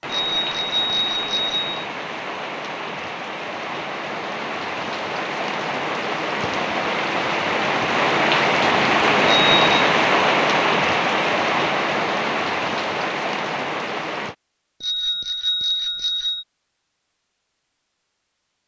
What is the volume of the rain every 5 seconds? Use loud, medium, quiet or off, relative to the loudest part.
medium, loud, loud, off.